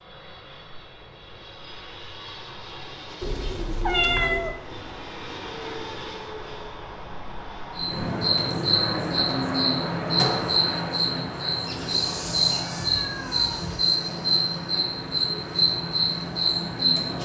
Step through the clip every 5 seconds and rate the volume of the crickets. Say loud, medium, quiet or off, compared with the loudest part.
off, loud, loud, loud.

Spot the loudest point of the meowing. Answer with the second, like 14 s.
4 s.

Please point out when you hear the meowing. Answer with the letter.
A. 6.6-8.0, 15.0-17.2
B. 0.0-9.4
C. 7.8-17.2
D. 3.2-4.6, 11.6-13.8
D.